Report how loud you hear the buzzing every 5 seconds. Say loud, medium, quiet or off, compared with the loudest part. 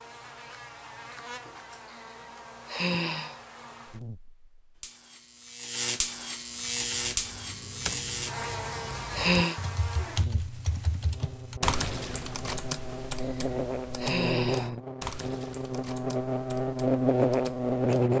quiet, medium, medium, loud.